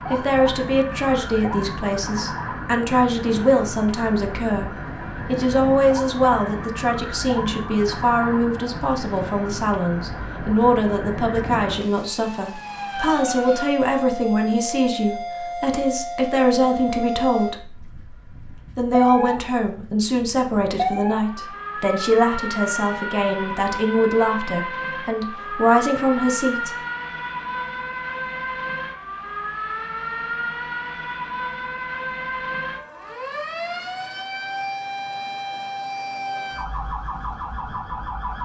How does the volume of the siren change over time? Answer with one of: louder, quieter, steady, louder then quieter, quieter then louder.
steady.